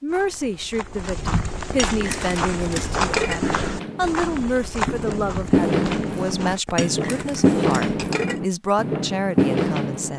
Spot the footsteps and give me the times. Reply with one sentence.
You can hear the footsteps from 0.1 to 6.6 s.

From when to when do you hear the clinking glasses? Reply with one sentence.
The clinking glasses can be heard from 1.7 to 3.4 s and from 6.7 to 8.4 s.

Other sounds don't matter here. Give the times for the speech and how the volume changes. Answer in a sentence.
The speech can be heard from 0.0 to 10.1 s, at a steady volume.